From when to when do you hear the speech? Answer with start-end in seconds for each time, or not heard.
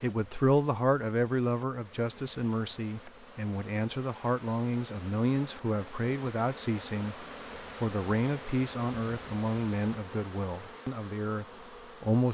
0.0-12.2.